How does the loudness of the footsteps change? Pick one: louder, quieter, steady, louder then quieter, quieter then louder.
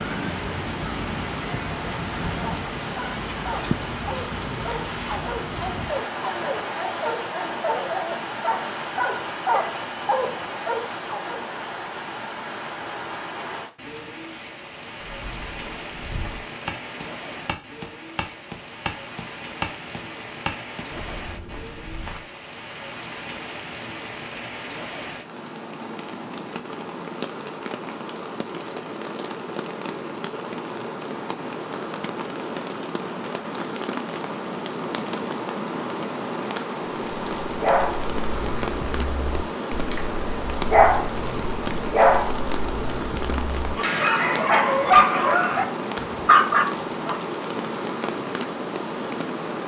louder then quieter.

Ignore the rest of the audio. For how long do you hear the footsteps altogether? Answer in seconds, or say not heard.
7 s.